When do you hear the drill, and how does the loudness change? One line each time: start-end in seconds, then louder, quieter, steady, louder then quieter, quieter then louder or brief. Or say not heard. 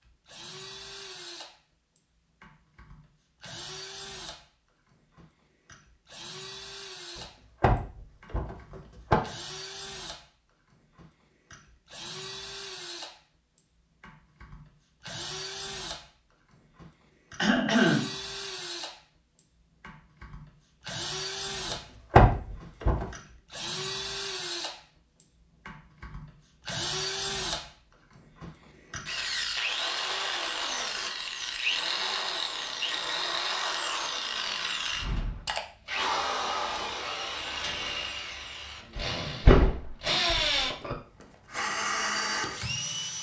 0.1-43.1 louder.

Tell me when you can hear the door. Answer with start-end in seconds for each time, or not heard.
7.2-9.2, 21.7-23.1, 39.0-41.0.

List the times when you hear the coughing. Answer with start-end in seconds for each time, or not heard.
17.4-18.1.